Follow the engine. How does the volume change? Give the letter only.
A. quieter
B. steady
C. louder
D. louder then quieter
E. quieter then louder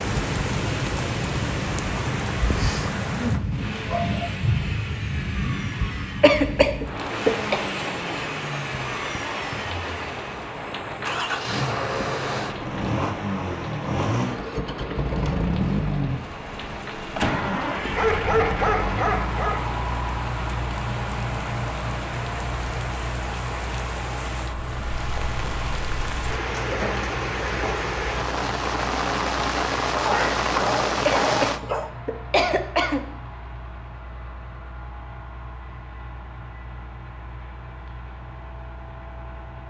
D.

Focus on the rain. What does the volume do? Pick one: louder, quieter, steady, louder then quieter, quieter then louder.
quieter then louder.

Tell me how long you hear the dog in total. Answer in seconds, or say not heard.
5 s.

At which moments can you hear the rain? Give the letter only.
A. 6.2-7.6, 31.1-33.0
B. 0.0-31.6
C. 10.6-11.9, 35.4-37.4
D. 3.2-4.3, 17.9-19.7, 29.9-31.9
B.